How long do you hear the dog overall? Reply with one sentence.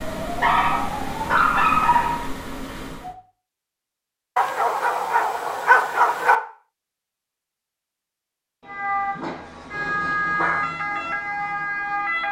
The dog can be heard for 5 seconds in total.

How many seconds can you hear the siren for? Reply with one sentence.
You can hear the siren for 7 seconds altogether.